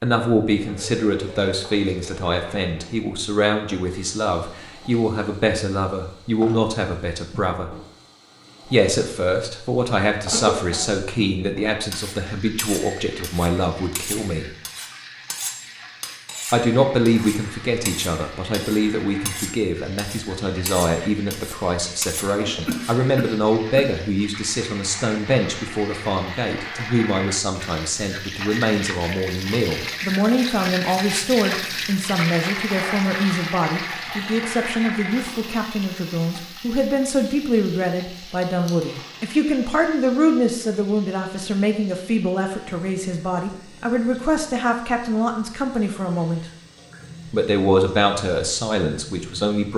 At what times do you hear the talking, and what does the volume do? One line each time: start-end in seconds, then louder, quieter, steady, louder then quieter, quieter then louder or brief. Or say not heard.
0.0-7.8 steady
8.7-14.5 steady
16.5-46.5 steady
47.3-49.7 brief.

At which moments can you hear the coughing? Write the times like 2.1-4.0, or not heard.
10.3-10.9, 22.4-24.1, 38.2-39.0.